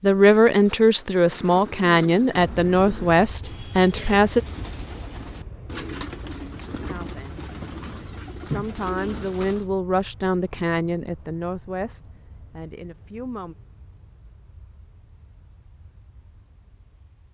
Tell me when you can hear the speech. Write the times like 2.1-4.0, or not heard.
0.0-4.4, 6.8-7.5, 8.4-13.6.